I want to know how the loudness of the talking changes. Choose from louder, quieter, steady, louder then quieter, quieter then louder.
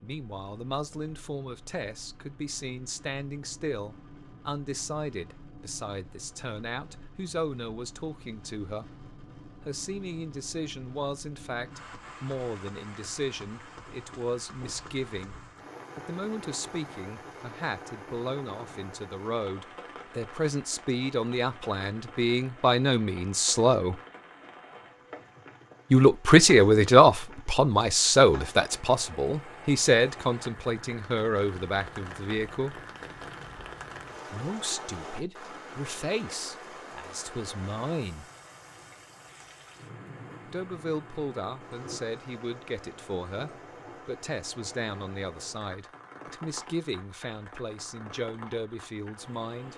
louder then quieter.